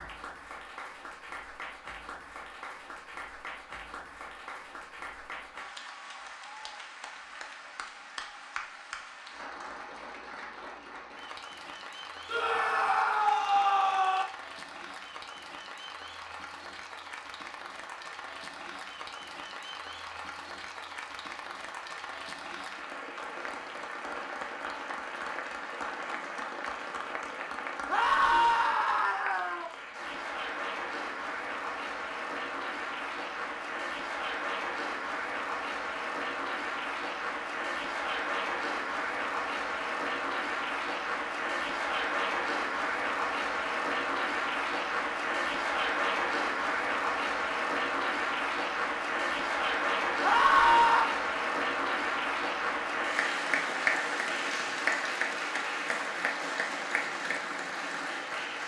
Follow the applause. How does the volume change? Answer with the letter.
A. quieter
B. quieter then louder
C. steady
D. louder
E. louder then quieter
D.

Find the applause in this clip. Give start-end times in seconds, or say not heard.
0.0-58.6.